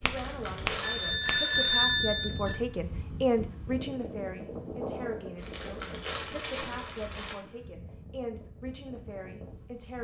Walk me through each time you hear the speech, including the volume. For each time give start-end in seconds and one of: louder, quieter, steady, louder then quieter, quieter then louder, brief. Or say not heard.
0.0-9.9 louder then quieter.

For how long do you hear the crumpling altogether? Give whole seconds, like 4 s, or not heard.
3 s.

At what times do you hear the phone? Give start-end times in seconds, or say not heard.
0.8-2.6.